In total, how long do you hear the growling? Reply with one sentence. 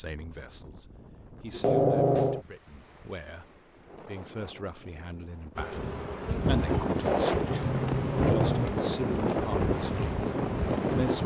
You can hear the growling for 3 seconds altogether.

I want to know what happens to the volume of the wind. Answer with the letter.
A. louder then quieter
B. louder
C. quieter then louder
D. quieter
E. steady
B.